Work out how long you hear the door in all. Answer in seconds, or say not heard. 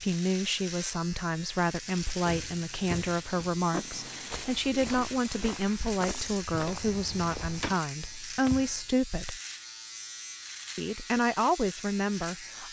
2 s.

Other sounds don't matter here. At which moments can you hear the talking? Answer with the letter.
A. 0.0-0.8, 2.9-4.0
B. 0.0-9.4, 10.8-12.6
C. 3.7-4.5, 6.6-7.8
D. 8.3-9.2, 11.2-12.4
B.